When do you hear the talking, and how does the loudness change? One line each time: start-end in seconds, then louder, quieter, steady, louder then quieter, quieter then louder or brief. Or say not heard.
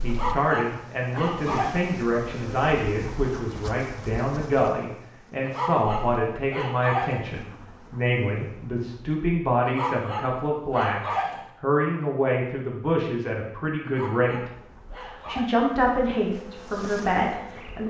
0.0-17.8 steady.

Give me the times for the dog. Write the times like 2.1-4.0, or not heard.
0.1-1.9, 5.5-7.3, 9.7-11.5, 13.8-15.7.